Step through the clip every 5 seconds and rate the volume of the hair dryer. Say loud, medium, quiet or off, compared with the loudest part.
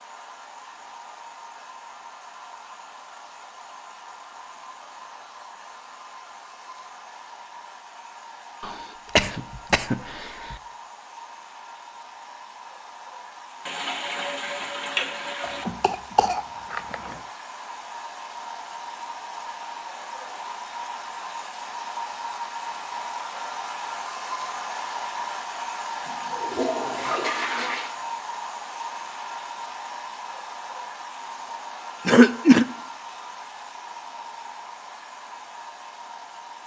medium, medium, medium, medium, loud, loud, medium, medium.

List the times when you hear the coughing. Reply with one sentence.
The coughing can be heard from 8.6 to 10.6 s, from 15.4 to 17.1 s and from 32.0 to 32.6 s.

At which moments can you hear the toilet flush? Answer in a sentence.
You can hear the toilet flush from 13.7 to 15.7 s and from 26.1 to 27.9 s.